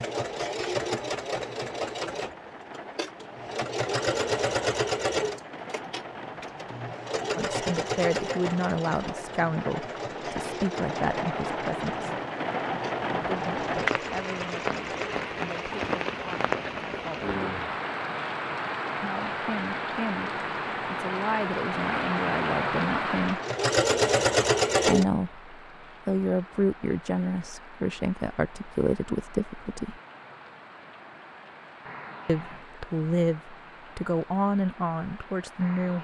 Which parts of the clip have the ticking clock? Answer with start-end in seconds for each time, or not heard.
not heard.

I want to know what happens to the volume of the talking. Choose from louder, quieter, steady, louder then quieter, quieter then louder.
quieter then louder.